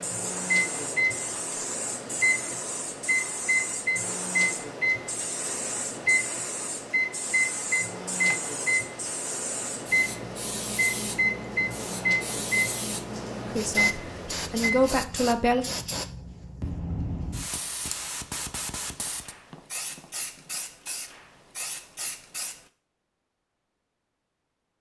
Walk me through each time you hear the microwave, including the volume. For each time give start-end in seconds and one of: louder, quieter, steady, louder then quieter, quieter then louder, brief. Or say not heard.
0.0-14.9 steady.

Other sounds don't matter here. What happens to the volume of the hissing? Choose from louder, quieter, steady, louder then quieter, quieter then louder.
steady.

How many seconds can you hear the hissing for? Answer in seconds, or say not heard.
23 s.